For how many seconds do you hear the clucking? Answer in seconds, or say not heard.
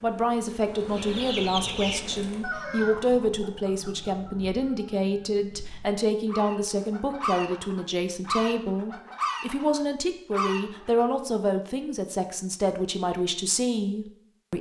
10 s.